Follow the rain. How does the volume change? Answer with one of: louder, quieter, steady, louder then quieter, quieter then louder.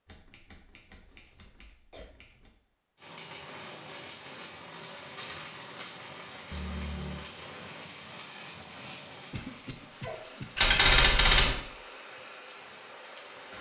steady.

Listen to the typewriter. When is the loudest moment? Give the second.
11 s.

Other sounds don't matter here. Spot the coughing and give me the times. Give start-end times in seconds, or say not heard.
1.1-2.1, 6.5-7.3, 9.3-10.4.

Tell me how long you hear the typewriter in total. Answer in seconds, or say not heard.
5 s.